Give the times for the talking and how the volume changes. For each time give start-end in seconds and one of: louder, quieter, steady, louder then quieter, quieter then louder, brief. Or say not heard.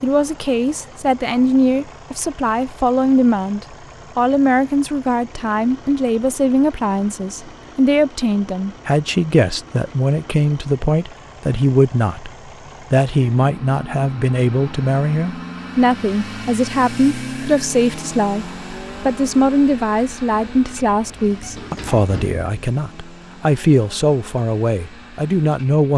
0.0-25.9 steady.